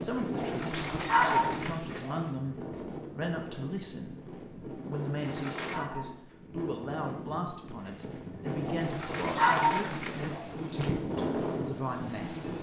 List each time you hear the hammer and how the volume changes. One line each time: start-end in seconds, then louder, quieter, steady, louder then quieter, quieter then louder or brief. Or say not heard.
not heard.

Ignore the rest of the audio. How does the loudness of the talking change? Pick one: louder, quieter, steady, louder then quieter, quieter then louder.
steady.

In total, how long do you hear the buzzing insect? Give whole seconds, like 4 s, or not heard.
6 s.